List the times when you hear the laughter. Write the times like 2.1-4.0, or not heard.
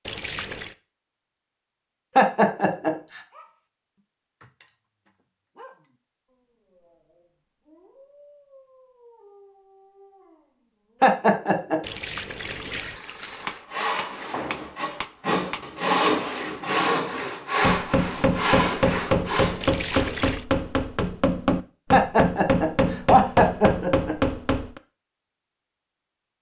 2.1-3.2, 11.0-11.8, 21.9-24.1.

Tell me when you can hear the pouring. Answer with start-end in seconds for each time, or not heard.
0.1-0.8, 11.8-13.7, 19.6-20.4.